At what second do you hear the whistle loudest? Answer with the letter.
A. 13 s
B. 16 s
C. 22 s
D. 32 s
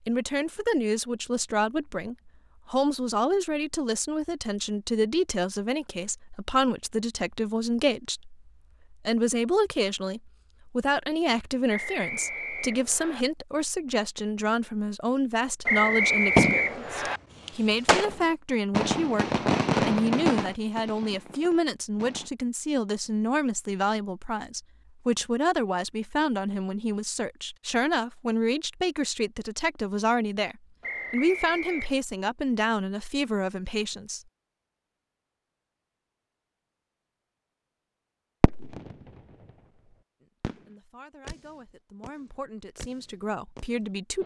B.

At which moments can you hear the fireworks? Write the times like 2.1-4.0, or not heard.
16.4-22.3, 38.4-39.0, 40.4-44.2.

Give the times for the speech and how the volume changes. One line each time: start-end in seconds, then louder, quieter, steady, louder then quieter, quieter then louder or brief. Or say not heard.
0.1-34.2 steady
40.2-44.2 louder.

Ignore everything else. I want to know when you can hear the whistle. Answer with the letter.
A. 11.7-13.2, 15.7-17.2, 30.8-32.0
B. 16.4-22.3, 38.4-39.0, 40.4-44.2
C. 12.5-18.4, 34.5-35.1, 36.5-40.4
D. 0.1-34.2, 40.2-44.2
A.